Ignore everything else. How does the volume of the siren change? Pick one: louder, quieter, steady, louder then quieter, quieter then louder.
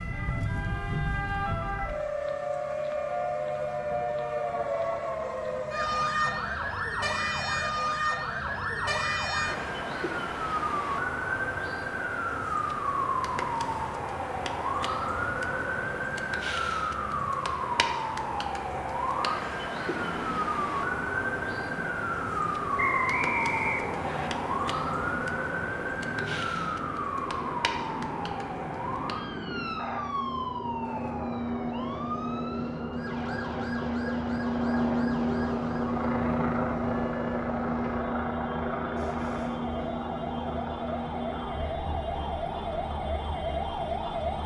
quieter.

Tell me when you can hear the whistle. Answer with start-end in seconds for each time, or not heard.
22.8-24.3.